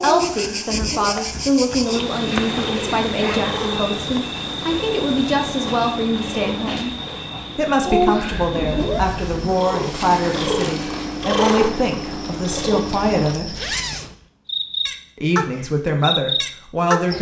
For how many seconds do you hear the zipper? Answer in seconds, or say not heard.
4 s.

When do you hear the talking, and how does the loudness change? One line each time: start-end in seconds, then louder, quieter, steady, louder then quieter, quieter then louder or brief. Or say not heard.
0.0-7.0 steady
7.5-13.8 steady
15.2-17.1 brief.